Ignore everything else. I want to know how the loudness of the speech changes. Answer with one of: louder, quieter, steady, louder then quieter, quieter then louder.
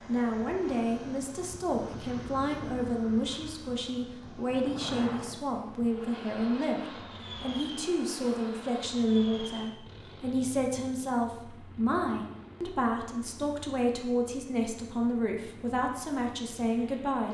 steady.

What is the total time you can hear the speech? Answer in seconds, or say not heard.
17 s.